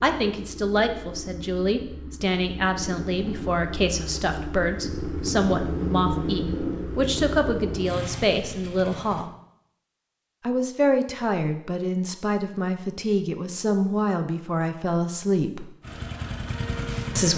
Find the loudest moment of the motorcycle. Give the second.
6 s.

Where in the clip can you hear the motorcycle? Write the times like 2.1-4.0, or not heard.
0.0-9.3, 15.8-17.3.